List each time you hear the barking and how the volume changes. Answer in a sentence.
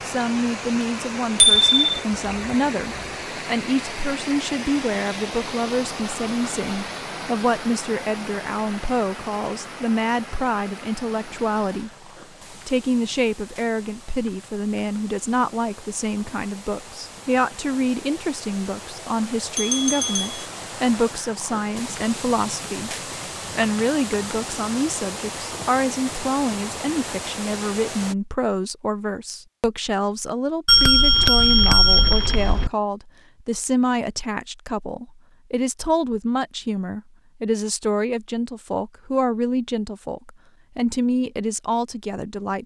The barking can't be heard in this clip.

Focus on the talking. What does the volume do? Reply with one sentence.
The loudness of the talking stays about the same.